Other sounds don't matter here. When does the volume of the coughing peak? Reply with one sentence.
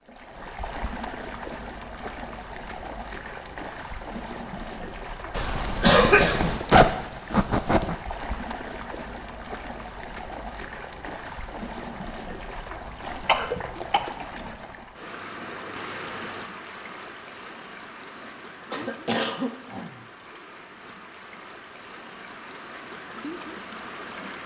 The volume of the coughing peaks at 6 seconds.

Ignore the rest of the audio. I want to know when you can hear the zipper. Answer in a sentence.
The zipper can be heard from 5.5 to 8.0 s.